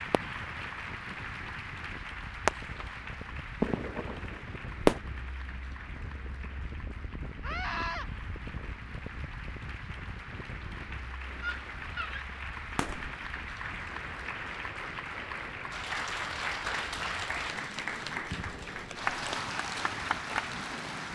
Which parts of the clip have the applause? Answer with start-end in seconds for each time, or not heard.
0.0-21.1.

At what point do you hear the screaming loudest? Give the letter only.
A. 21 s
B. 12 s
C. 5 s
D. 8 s
D.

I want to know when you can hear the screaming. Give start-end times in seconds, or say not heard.
7.4-8.1, 11.4-12.2.